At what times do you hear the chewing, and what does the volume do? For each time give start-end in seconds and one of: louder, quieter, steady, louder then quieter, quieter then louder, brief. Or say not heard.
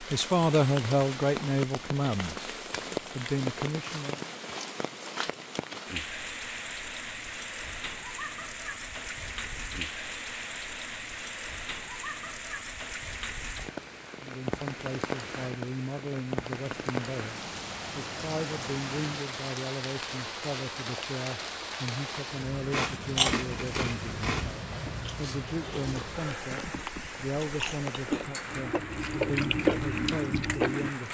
22.7-30.9 quieter then louder.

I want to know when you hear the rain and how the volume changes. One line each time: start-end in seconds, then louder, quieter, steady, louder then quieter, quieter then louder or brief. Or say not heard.
0.0-31.0 steady.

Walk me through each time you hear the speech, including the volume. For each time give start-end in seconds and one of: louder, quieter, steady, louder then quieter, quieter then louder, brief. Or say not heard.
0.0-4.2 quieter then louder
14.2-31.0 steady.